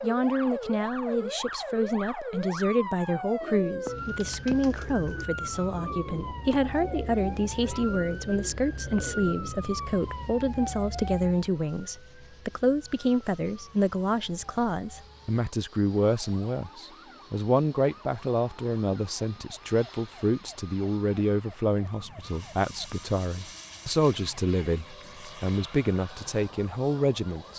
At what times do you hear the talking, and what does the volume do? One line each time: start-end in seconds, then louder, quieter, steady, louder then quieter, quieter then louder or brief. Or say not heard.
0.0-27.5 steady.